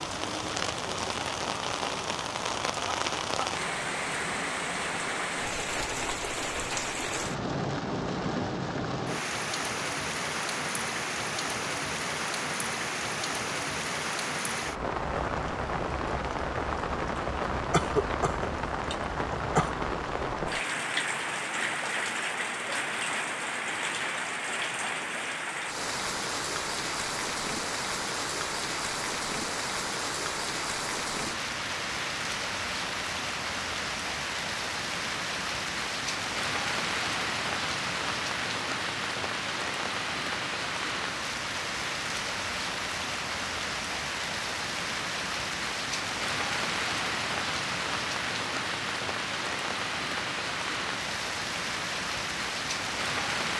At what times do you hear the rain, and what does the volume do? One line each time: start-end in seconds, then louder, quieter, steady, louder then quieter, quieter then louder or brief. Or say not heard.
0.0-53.5 steady.